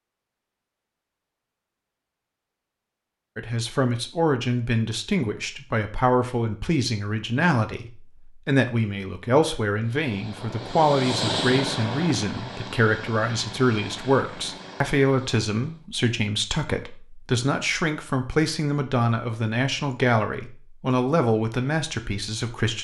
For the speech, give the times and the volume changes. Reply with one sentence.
The speech can be heard from 3.4 to 22.8 s, at a steady volume.